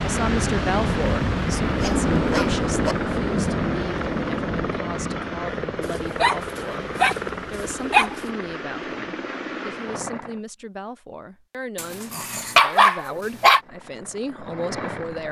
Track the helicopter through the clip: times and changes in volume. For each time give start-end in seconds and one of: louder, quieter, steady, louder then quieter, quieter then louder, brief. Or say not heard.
0.0-10.4 steady
13.5-15.2 brief.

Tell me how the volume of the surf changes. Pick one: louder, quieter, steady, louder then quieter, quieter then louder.
quieter.